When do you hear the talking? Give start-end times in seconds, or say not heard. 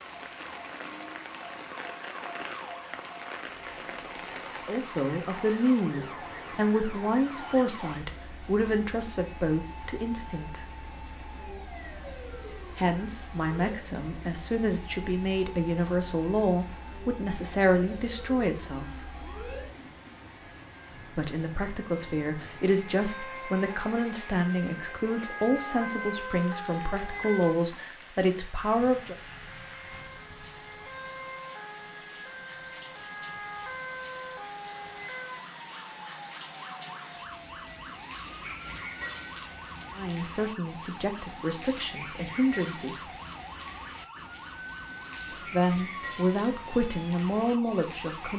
4.7-10.6, 12.8-18.9, 21.1-29.1, 40.0-43.0, 45.3-48.3.